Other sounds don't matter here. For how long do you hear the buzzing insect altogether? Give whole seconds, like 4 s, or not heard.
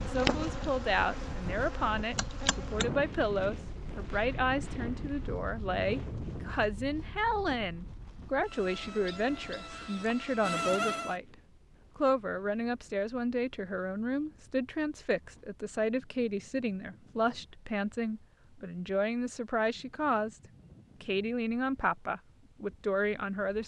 6 s.